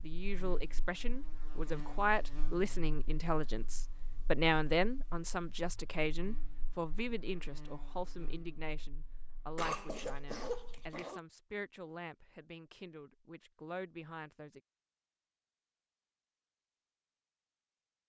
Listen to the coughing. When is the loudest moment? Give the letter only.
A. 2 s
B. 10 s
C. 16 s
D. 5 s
B.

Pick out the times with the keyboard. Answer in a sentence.
You can't hear the keyboard here.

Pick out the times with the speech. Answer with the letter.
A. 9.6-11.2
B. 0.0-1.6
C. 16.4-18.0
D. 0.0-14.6
D.